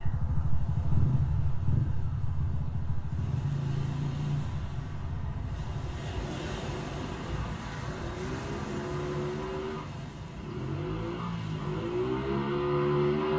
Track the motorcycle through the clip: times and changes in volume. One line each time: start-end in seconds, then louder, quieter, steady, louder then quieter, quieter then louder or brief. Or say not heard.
0.0-13.3 quieter then louder.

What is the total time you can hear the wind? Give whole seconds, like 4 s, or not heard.
13 s.